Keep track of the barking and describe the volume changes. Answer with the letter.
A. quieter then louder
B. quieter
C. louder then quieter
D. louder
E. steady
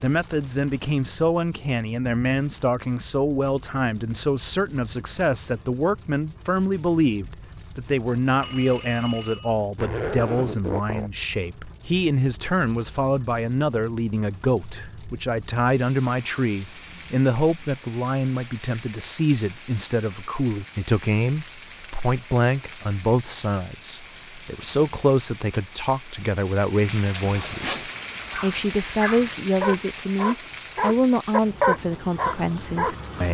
D.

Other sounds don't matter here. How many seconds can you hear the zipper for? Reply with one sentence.
You can hear the zipper for 2 seconds altogether.